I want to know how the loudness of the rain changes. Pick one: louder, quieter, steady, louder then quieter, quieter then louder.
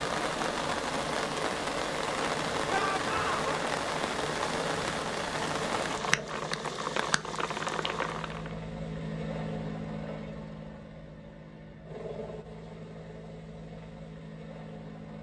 steady.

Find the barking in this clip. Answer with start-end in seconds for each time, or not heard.
not heard.